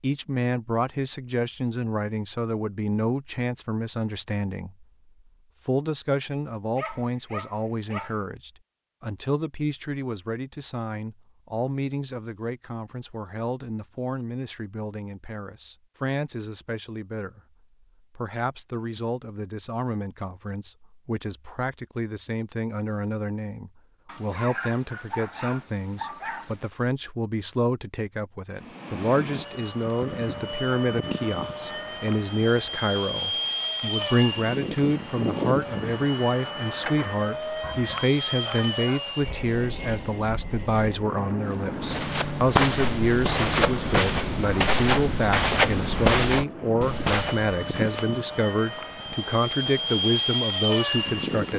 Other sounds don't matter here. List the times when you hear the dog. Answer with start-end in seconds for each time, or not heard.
6.8-8.2, 24.1-26.6, 37.6-39.1.